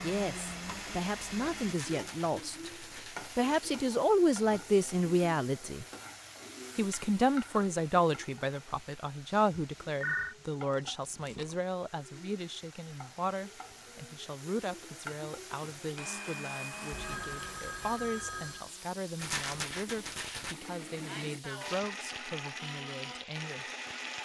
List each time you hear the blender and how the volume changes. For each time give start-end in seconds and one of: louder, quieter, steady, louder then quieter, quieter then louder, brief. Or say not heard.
0.0-1.8 brief
15.9-24.1 quieter then louder.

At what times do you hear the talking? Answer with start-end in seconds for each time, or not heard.
0.0-2.7, 3.4-5.8, 6.8-23.6.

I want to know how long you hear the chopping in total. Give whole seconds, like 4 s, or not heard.
not heard.